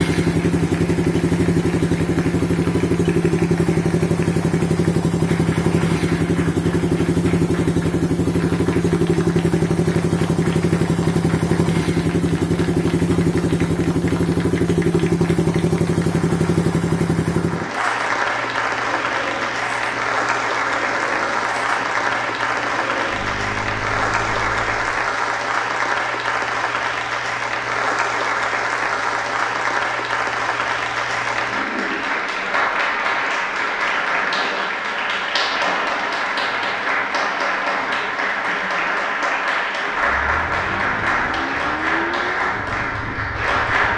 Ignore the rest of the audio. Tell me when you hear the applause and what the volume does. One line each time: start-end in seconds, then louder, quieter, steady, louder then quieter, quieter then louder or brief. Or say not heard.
0.0-43.9 louder.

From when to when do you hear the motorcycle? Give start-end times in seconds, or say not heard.
0.0-25.0, 40.0-43.9.